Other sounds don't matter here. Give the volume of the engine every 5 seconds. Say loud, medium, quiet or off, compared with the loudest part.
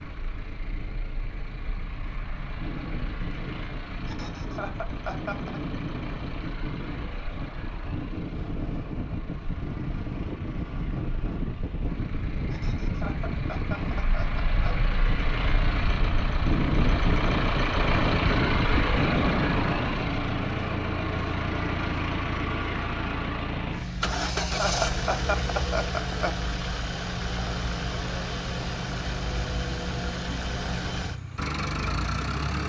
quiet, quiet, medium, loud, loud, loud, loud.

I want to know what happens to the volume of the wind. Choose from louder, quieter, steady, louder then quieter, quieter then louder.
louder.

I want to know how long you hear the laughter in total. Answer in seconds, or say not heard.
6 s.